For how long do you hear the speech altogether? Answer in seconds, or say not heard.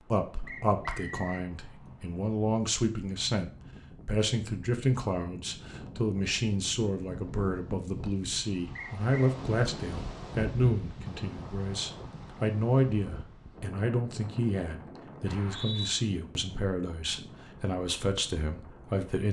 19 s.